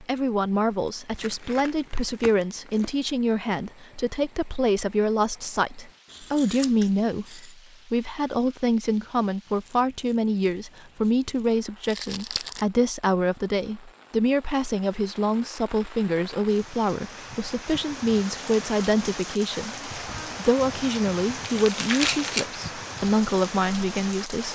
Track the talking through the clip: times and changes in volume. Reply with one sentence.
You can hear the talking from 0.0 to 24.5 s, at a steady volume.